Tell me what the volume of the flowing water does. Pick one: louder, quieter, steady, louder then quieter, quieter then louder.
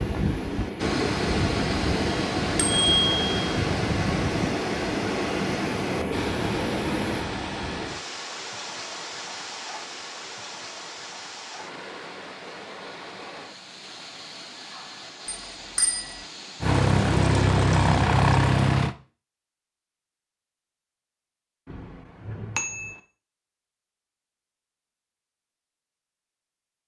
quieter.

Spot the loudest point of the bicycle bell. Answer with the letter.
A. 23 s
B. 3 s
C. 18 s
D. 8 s
B.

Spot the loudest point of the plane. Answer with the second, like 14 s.
18 s.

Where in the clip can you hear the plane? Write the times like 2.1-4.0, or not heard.
0.0-7.2, 16.6-18.9.